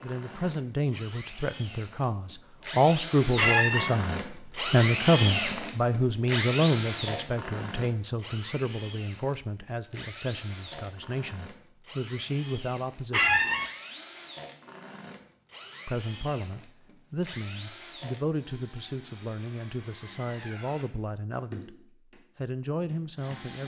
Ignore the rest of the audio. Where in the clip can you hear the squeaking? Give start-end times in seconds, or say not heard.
3.4-3.9, 13.1-13.7.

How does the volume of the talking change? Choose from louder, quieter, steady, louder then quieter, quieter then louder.
quieter.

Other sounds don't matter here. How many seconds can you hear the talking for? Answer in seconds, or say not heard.
21 s.